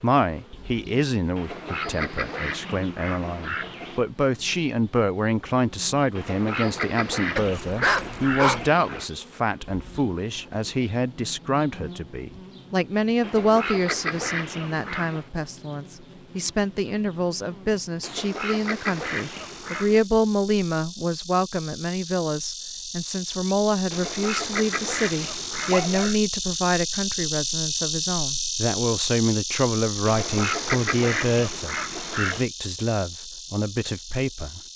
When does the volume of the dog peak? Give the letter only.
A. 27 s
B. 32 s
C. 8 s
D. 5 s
C.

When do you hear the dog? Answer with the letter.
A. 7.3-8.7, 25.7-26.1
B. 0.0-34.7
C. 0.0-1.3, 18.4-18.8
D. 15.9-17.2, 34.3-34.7
A.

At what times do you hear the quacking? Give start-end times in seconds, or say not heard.
1.4-4.0, 6.2-9.1, 13.2-15.2, 18.0-20.1, 23.9-26.1, 30.1-32.5.